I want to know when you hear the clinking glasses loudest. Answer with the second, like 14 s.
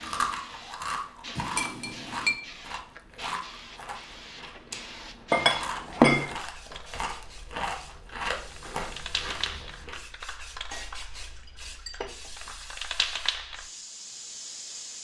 6 s.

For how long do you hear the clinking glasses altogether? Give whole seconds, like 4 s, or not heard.
4 s.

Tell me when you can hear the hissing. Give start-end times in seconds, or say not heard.
0.0-14.9.